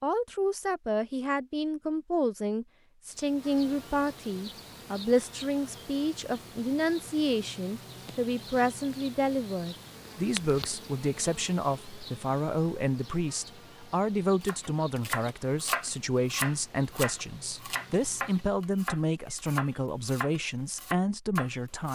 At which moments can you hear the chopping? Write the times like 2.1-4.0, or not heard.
14.4-21.8.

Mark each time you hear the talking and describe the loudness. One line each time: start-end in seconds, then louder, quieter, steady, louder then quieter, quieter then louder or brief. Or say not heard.
0.0-21.8 steady.